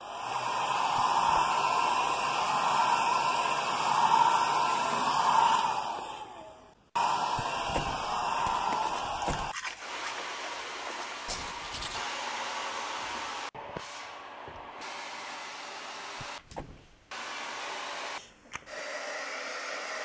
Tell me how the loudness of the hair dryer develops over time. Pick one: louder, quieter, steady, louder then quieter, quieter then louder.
quieter.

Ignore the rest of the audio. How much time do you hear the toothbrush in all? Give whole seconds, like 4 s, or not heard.
4 s.